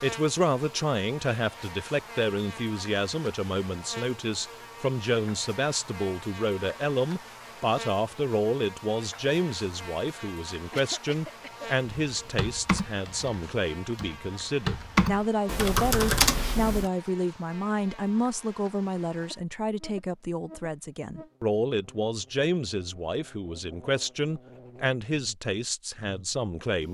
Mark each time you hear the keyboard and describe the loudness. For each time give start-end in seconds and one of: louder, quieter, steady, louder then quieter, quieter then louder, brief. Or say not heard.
12.1-16.9 quieter then louder.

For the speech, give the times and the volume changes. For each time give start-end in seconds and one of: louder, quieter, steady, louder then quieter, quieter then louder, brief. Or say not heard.
0.0-26.8 steady.